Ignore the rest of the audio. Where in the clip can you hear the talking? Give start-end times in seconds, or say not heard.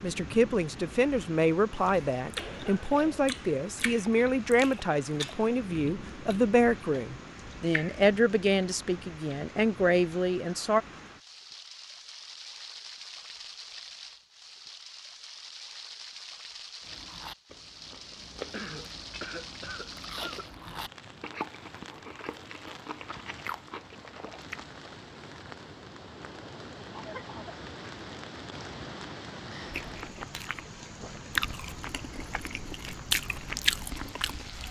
0.0-10.8.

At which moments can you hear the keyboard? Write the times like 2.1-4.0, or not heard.
not heard.